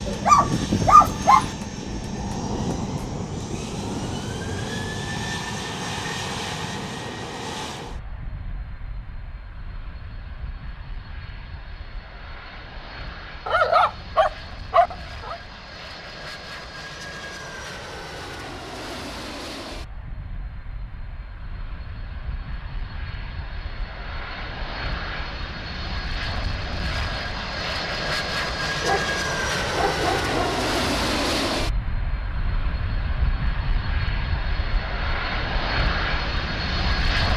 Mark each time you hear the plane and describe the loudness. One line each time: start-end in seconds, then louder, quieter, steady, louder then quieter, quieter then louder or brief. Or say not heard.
0.0-37.3 quieter then louder.